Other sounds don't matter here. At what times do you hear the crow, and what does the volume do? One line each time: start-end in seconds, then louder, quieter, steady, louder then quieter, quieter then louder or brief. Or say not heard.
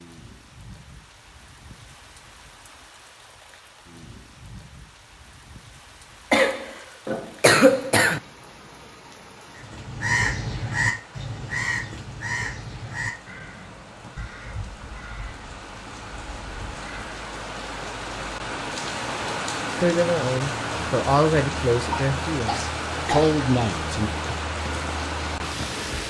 9.6-17.1 quieter.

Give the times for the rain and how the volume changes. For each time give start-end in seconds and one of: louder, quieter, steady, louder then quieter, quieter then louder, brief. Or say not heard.
0.0-26.0 louder.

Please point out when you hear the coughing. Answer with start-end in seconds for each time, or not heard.
6.3-8.2, 21.9-23.4.